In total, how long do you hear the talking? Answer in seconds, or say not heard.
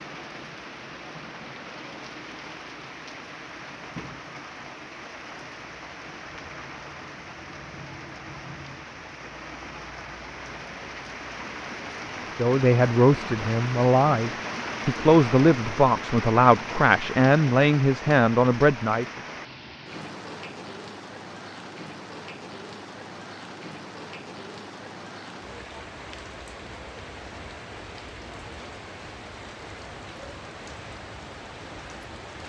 7 s.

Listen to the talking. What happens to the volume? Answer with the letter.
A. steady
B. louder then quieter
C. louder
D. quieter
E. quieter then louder
A.